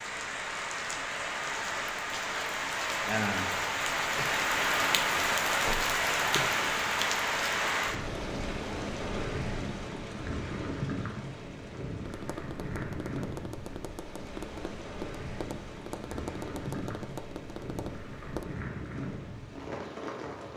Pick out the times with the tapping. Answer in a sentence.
The tapping can be heard from 12.0 to 18.4 s.